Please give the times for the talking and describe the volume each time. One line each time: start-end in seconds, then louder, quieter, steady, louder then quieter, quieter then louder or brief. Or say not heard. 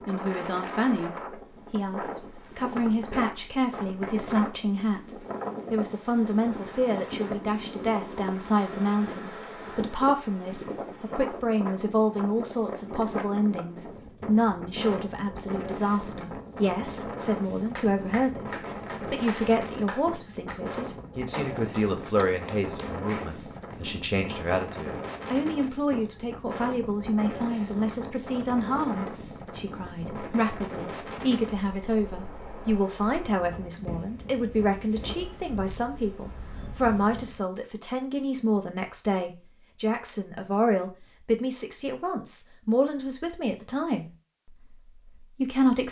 0.1-45.8 steady.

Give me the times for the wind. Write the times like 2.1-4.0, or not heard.
0.0-37.5.